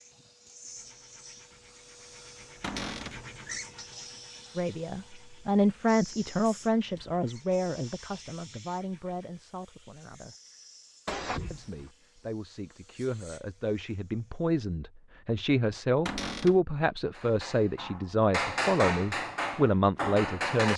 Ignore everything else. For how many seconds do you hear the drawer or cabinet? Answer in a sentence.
You can hear the drawer or cabinet for 2 seconds altogether.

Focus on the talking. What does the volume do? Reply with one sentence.
The volume of the talking goes down, then up.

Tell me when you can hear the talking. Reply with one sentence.
You can hear the talking from 4.5 to 10.3 s and from 11.5 to 20.7 s.